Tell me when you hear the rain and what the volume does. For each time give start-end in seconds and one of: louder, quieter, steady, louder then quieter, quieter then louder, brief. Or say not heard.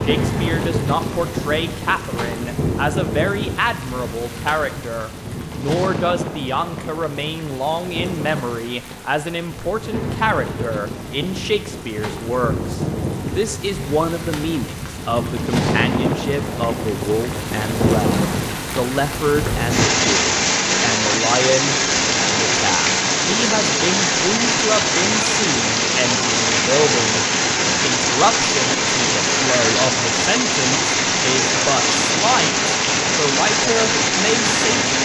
0.0-35.0 louder.